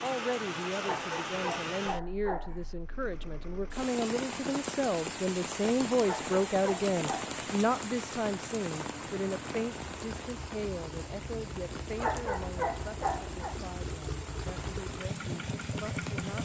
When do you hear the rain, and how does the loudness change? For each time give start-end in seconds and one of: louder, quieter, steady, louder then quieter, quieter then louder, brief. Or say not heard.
0.0-16.4 quieter.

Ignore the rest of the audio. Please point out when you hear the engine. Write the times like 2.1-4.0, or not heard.
2.8-16.4.